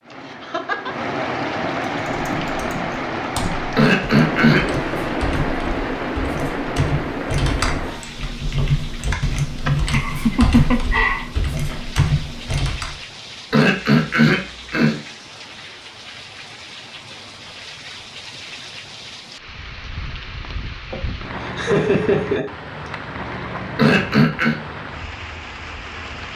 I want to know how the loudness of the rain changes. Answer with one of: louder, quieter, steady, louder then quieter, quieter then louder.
quieter then louder.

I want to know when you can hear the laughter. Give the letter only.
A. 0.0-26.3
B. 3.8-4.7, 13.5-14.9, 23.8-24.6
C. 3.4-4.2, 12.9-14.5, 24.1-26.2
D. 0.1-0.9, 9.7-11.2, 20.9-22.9
D.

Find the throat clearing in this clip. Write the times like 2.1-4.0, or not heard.
3.8-4.7, 13.5-14.9, 23.8-24.6.